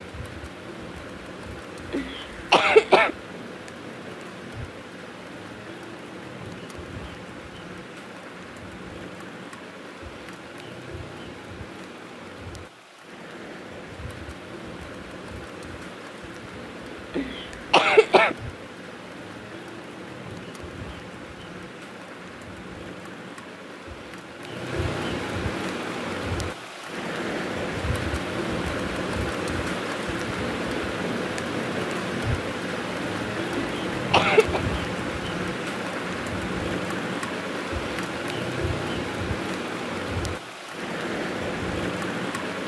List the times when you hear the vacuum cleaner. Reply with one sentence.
The vacuum cleaner can't be heard in this clip.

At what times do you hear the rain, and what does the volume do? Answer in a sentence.
You can hear the rain from 0.0 to 42.6 s, getting louder.